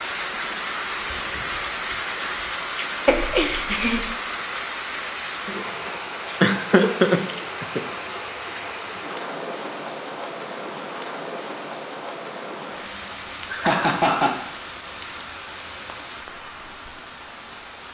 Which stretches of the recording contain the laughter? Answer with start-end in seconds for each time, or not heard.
3.0-4.2, 6.4-7.8, 13.5-14.3.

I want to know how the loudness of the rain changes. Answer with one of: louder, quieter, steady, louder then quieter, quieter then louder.
quieter.